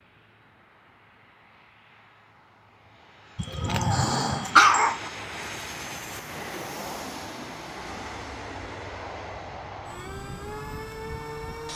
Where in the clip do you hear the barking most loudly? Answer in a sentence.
The volume of the barking peaks at 5 seconds.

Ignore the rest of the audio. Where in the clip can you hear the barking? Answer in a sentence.
You can hear the barking from 3.4 to 5.0 s.